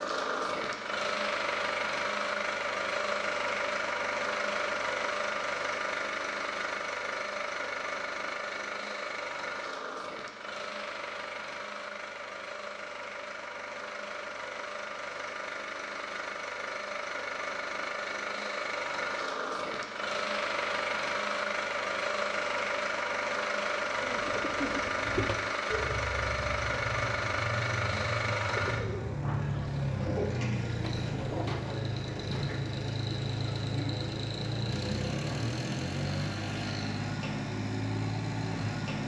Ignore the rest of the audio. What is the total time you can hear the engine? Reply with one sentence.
You can hear the engine for 39 seconds altogether.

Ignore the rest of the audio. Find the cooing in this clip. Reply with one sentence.
The cooing can be heard from 23.9 to 31.9 s.